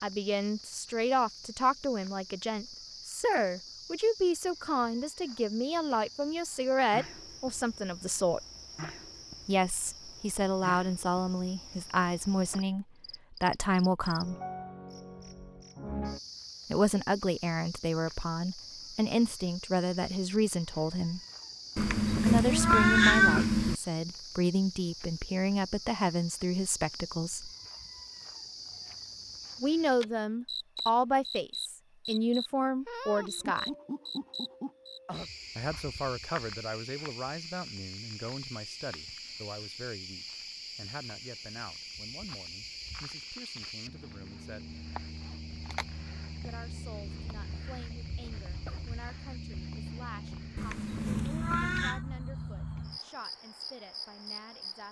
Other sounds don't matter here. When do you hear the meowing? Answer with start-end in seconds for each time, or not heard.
21.8-23.8, 50.5-52.0.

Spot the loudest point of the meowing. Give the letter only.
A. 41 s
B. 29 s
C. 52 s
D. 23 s
D.